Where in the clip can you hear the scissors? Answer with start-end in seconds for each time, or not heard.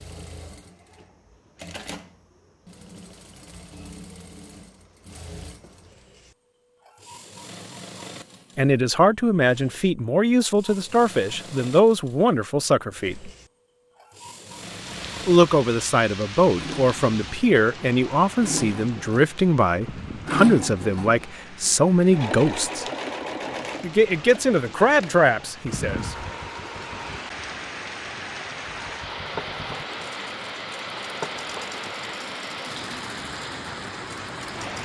not heard.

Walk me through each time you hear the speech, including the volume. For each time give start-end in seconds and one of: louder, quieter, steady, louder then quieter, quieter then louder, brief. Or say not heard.
8.6-13.3 steady
15.2-22.9 steady
23.8-26.1 brief.